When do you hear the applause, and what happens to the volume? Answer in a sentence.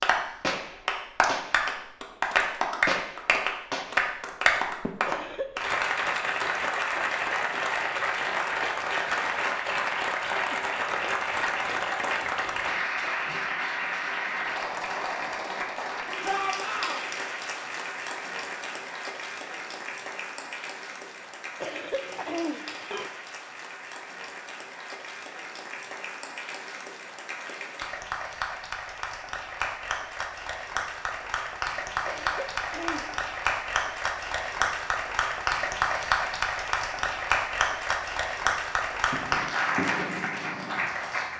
You can hear the applause from 0.0 to 41.3 s, getting quieter then louder.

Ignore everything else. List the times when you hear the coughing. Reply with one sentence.
The coughing can be heard from 5.0 to 5.6 s, from 21.6 to 23.1 s and from 32.0 to 33.1 s.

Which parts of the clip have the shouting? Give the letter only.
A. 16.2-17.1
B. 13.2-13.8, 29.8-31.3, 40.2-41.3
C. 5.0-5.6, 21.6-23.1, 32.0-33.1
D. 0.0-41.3
A.